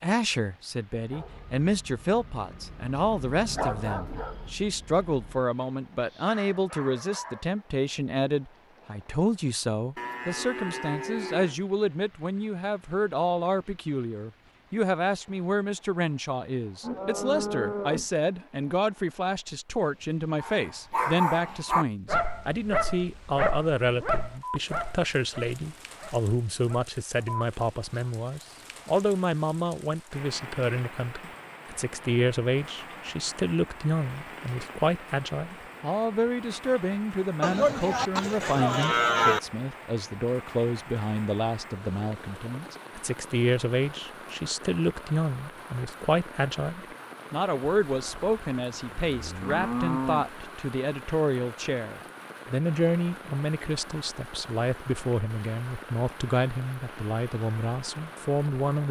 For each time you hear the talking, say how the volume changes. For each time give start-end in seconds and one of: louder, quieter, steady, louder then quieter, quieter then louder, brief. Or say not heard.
0.0-58.8 steady.